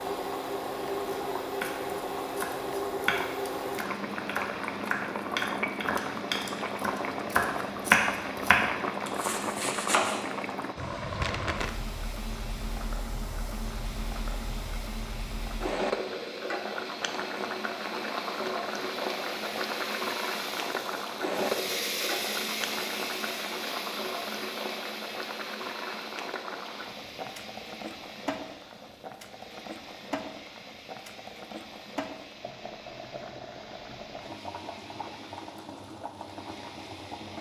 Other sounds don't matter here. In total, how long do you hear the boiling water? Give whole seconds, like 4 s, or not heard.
37 s.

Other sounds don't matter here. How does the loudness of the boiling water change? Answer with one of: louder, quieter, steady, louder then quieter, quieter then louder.
quieter.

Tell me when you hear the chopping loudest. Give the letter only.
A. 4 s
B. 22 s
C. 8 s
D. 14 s
C.